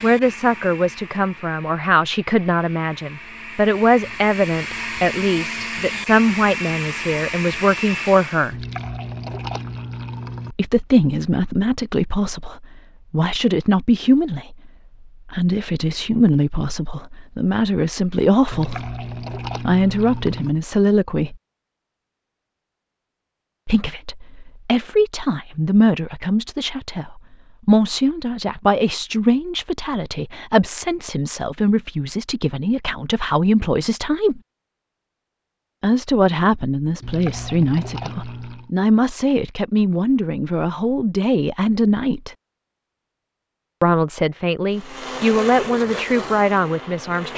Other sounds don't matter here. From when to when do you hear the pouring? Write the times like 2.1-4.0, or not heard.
8.5-10.6, 18.5-20.6, 37.0-38.7.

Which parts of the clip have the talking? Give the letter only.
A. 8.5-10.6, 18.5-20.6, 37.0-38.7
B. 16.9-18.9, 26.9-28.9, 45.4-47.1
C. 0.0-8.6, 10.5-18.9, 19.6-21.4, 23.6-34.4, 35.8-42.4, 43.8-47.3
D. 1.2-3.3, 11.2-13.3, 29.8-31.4
C.